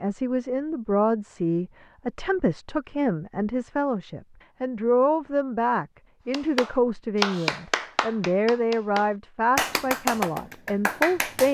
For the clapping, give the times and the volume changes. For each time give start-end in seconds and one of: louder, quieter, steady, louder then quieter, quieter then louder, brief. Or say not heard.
6.3-11.5 quieter then louder.